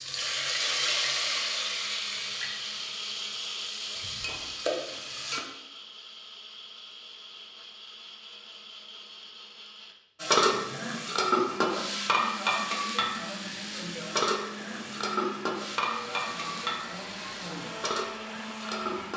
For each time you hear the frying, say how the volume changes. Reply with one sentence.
The frying can be heard from 0.0 to 5.4 s, getting quieter then louder; and from 10.2 to 19.1 s, getting quieter.